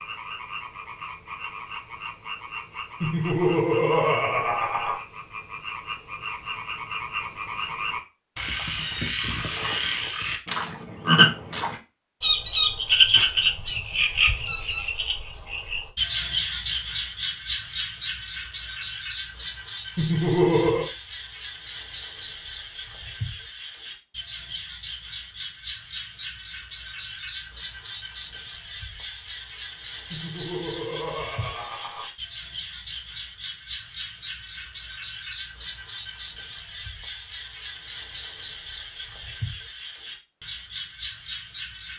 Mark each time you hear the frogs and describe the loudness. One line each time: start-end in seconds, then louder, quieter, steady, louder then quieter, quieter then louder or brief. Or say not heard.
0.0-41.9 louder then quieter.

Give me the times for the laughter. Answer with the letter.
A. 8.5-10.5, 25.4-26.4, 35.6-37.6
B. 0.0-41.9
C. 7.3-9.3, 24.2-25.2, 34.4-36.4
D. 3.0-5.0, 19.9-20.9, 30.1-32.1
D.